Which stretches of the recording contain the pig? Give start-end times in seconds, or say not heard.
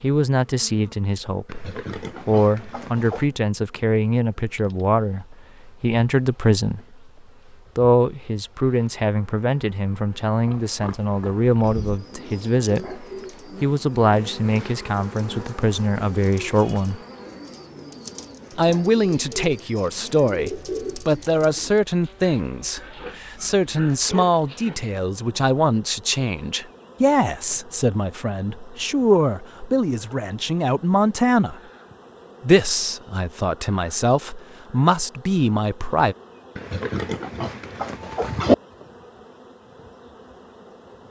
1.4-3.3, 10.4-12.0, 22.0-24.9, 36.5-38.5.